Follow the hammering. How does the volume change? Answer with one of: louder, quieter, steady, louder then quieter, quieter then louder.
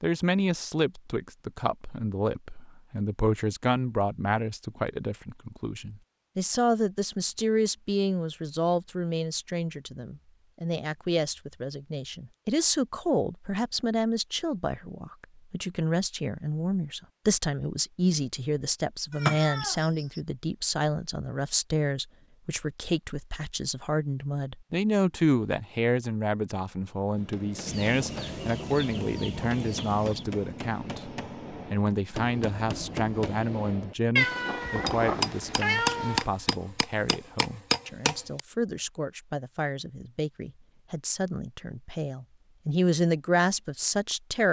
louder.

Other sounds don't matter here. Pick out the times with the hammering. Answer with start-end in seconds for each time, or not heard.
27.1-38.4.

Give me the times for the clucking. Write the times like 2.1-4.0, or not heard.
27.6-30.2.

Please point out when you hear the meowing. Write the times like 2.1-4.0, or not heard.
19.1-20.2, 34.1-36.2.